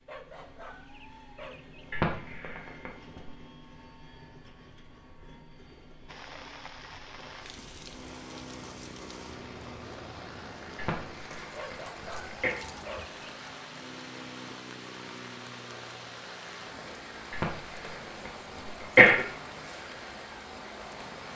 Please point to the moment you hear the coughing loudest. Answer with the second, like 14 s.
19 s.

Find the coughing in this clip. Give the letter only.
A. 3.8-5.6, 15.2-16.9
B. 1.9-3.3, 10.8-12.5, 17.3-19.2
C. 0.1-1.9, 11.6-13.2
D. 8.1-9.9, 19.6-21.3
B.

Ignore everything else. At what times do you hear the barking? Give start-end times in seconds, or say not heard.
0.1-1.9, 11.6-13.2.